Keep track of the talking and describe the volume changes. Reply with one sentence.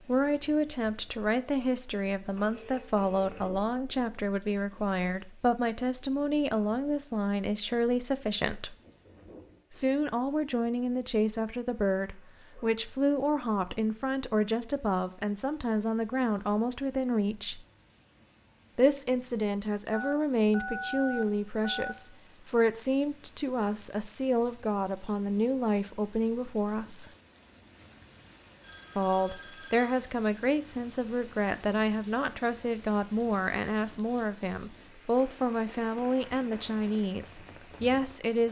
The loudness of the talking stays about the same.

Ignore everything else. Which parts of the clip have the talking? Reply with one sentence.
The talking can be heard from 0.1 to 8.8 s, from 9.7 to 17.6 s, from 18.8 to 27.1 s and from 28.9 to 38.4 s.